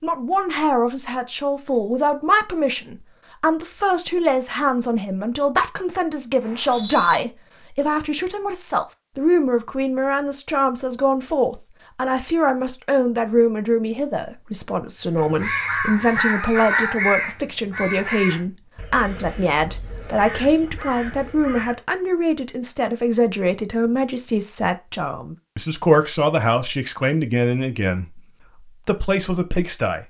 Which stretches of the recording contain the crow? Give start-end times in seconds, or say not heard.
15.2-21.8.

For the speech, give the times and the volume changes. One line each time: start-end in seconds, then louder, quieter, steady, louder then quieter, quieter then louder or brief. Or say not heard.
0.0-30.0 steady.